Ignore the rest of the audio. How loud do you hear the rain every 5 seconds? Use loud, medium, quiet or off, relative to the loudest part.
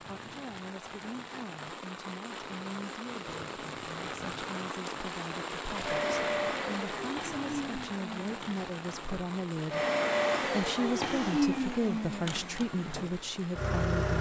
loud, loud, medium.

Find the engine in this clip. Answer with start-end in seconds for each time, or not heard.
5.5-14.1.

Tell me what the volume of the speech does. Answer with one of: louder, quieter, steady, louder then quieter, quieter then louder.
louder.